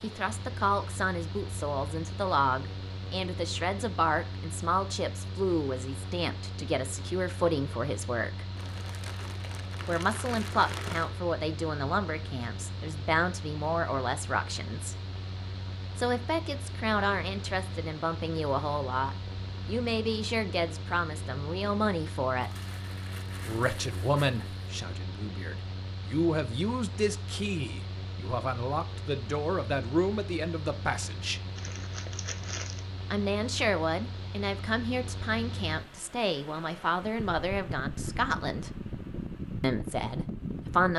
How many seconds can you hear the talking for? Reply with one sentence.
The talking can be heard for 35 seconds in total.